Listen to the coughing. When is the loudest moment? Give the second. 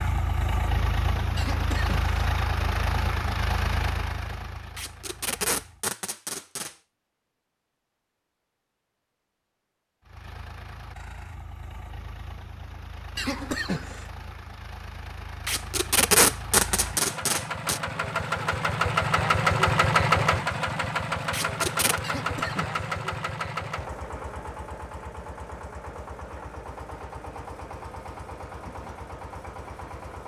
14 s.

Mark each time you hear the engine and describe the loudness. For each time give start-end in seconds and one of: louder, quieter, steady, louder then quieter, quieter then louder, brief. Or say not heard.
0.0-5.8 quieter
10.1-30.2 louder then quieter.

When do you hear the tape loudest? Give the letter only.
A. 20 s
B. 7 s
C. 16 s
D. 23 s
C.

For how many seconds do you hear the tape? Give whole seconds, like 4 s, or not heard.
5 s.